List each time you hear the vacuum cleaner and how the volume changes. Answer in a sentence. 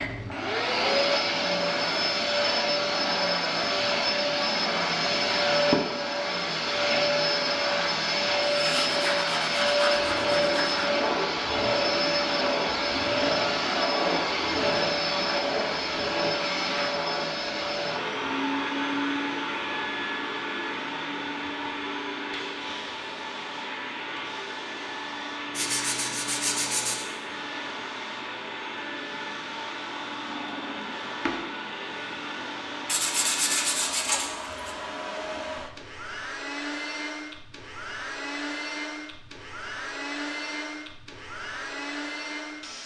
You can hear the vacuum cleaner from 0.0 to 42.8 s, getting quieter.